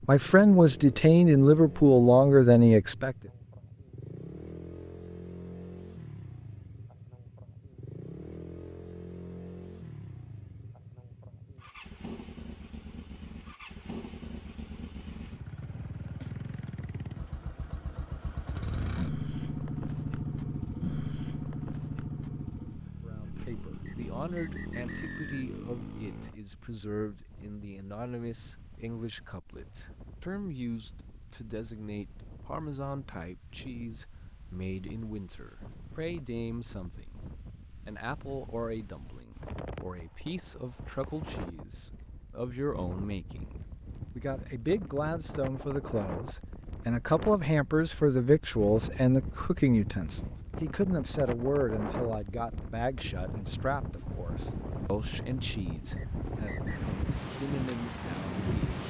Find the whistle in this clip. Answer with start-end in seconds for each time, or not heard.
23.9-25.4, 56.0-56.8.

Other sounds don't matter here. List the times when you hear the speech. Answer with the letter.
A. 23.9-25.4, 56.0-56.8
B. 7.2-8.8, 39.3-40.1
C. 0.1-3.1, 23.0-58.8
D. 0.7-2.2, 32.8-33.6
C.